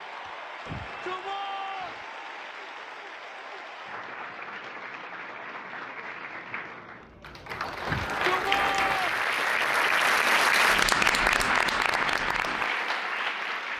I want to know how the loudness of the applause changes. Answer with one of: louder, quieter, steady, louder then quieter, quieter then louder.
louder.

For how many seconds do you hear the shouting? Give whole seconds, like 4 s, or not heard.
3 s.